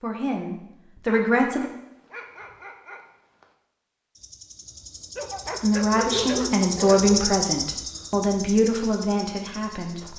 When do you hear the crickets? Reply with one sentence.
The crickets can be heard from 4.2 to 10.1 s.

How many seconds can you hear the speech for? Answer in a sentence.
The speech can be heard for 6 seconds in total.